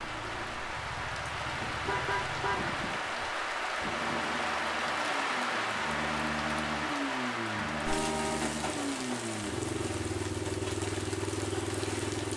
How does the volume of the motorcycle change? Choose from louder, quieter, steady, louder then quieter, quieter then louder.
louder.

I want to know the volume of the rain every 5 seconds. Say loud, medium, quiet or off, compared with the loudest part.
loud, loud, medium.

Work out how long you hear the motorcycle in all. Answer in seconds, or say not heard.
12 s.